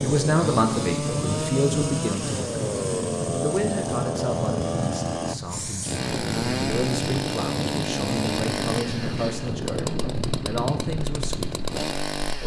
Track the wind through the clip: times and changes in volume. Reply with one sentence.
You can hear the wind from 0.0 to 12.4 s, at a steady volume.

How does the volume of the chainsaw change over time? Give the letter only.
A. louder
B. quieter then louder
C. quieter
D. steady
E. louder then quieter
D.